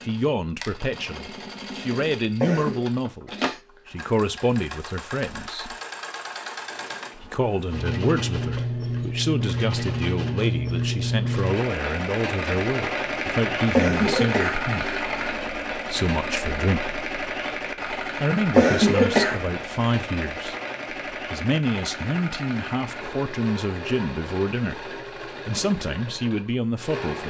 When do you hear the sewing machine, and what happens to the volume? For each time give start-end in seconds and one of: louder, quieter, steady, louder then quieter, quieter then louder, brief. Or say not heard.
0.0-27.2 louder then quieter.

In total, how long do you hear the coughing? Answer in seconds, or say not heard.
3 s.